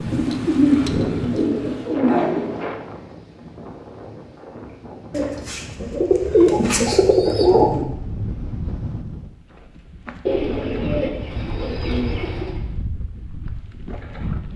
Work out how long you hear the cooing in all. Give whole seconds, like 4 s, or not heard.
8 s.